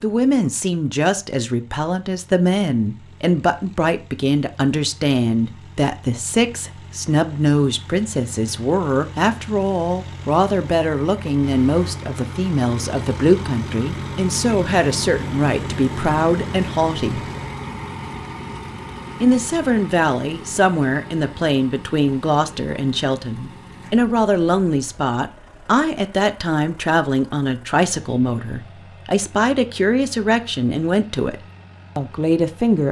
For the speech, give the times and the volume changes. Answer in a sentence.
You can hear the speech from 0.0 to 17.2 s, at a steady volume; from 19.2 to 31.4 s, at a steady volume; and briefly from 31.9 to 32.8 s.